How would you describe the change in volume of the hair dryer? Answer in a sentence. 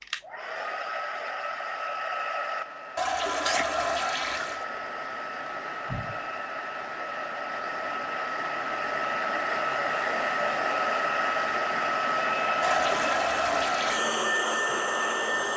The volume of the hair dryer goes up.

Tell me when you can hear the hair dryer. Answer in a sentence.
You can hear the hair dryer from 0.0 to 15.5 s.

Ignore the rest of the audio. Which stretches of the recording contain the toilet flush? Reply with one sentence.
You can hear the toilet flush from 3.0 to 4.7 s and from 12.6 to 14.1 s.